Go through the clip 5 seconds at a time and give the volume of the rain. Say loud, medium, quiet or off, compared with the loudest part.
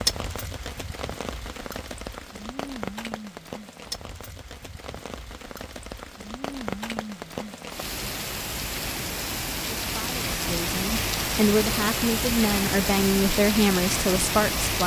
medium, medium, loud.